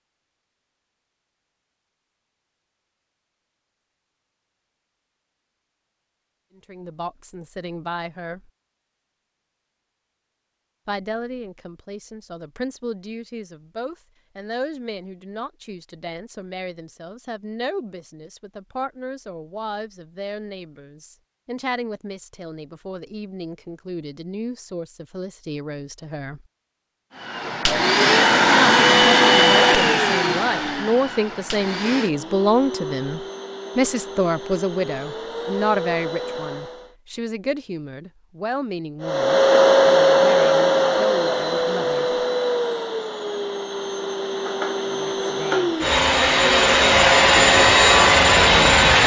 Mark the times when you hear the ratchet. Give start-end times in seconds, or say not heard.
not heard.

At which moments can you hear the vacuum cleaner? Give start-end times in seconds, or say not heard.
27.2-37.0, 39.0-49.0.